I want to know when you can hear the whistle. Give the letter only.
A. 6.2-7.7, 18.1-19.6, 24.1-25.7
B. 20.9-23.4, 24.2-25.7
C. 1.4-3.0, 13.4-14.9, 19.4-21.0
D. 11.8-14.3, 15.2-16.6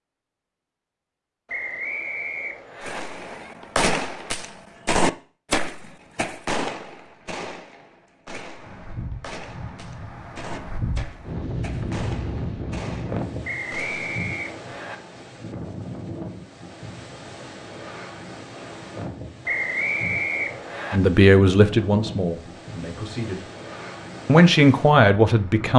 C.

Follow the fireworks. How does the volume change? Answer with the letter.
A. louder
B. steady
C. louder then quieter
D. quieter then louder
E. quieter
E.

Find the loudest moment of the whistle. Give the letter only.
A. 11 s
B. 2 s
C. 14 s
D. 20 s
D.